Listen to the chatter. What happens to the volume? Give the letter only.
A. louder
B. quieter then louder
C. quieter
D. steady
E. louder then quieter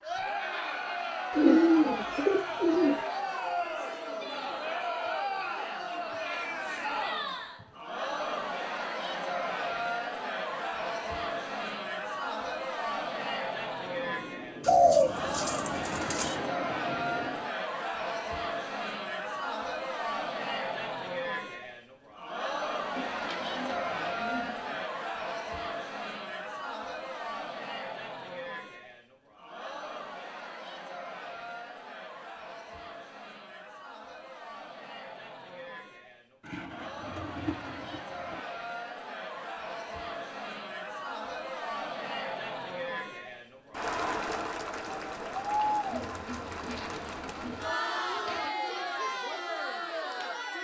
B.